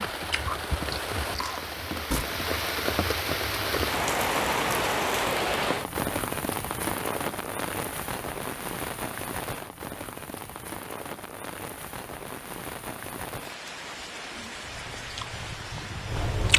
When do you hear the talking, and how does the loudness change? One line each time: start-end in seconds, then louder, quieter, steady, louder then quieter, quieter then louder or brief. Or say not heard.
not heard.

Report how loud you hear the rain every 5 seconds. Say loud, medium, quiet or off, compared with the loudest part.
loud, loud, medium, medium.